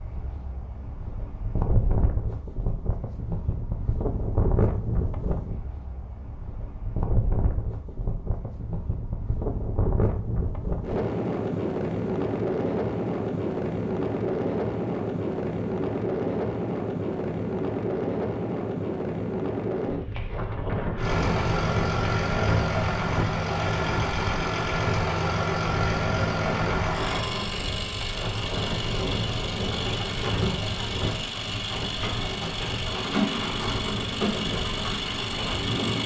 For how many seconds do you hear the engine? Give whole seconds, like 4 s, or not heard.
15 s.